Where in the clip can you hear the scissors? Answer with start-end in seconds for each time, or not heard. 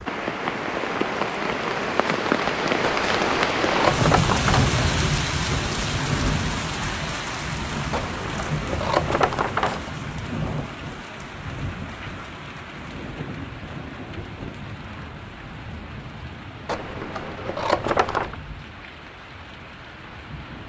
2.8-5.0, 7.9-9.9, 16.6-18.4.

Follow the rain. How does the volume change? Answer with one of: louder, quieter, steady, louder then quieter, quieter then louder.
quieter.